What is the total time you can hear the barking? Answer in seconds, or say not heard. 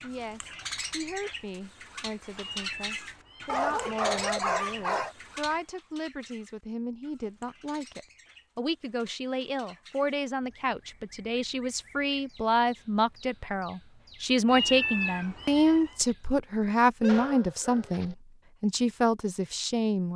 3 s.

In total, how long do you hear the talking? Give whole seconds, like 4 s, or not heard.
20 s.